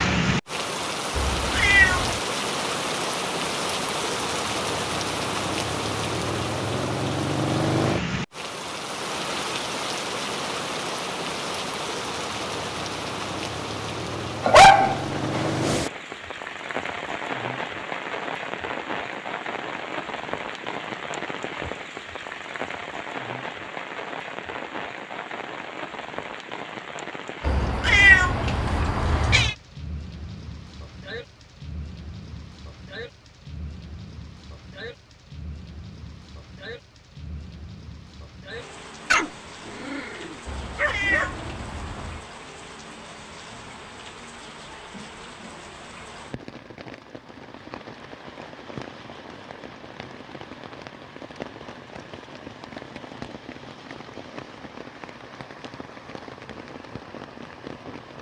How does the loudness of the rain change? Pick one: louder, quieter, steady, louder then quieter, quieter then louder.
quieter.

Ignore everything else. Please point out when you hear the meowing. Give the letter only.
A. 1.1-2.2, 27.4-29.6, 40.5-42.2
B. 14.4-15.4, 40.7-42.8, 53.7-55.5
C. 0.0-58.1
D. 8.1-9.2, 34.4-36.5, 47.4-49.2
A.